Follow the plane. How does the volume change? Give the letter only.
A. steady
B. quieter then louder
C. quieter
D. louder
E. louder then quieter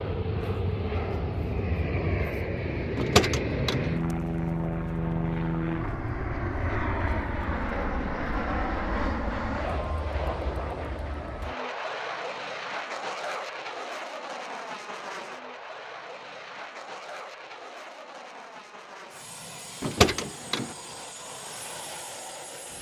C.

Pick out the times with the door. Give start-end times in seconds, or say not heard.
3.0-3.9, 19.8-20.7.